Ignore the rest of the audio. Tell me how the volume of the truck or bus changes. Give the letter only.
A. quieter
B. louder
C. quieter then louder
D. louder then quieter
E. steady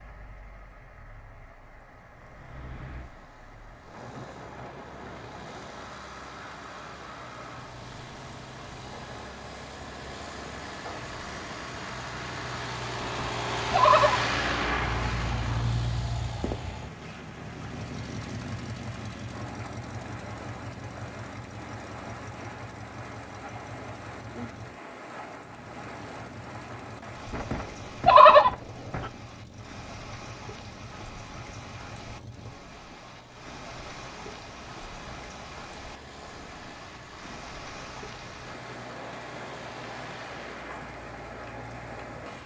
D.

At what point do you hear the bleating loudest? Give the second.
28 s.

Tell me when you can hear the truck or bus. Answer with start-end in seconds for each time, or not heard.
2.4-42.1.